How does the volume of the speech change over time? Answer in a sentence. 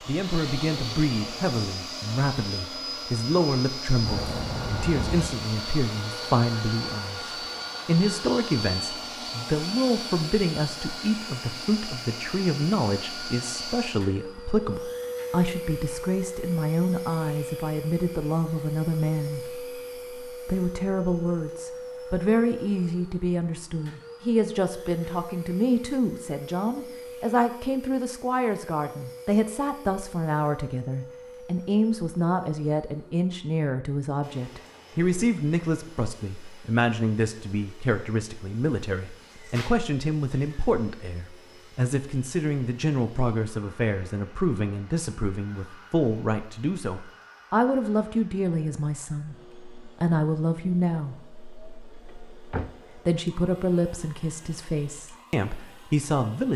The volume of the speech stays about the same.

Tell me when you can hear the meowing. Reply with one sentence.
The meowing can be heard from 4.0 to 5.3 s and from 39.2 to 40.7 s.